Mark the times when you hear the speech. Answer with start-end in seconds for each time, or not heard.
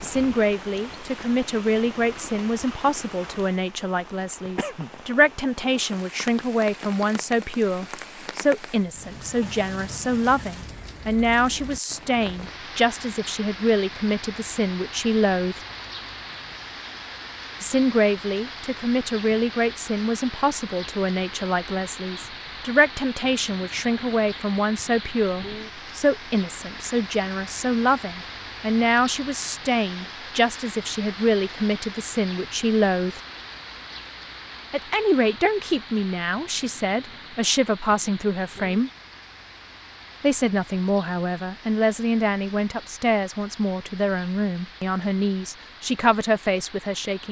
0.0-15.6, 17.6-33.2, 34.7-38.9, 40.2-47.2.